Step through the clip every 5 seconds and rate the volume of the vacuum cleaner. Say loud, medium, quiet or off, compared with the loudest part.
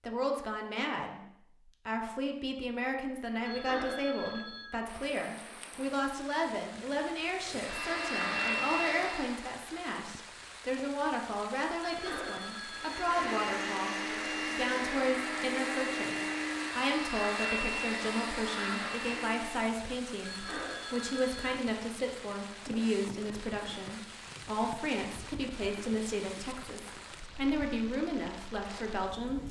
off, loud, loud, loud, off, off.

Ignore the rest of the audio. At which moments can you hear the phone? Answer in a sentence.
You can hear the phone from 3.5 to 4.8 s, from 11.8 to 13.2 s and from 20.2 to 21.6 s.